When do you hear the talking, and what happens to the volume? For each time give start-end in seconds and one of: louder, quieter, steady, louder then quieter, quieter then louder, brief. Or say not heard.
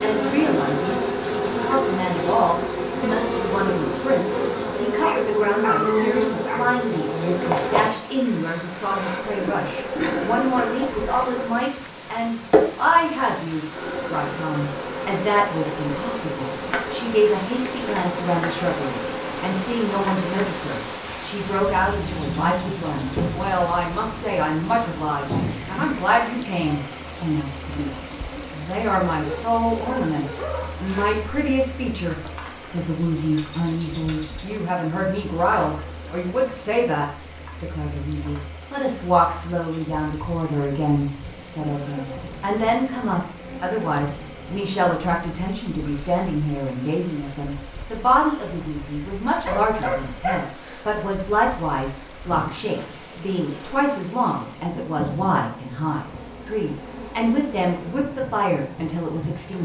0.0-59.5 steady.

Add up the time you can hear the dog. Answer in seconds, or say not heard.
5 s.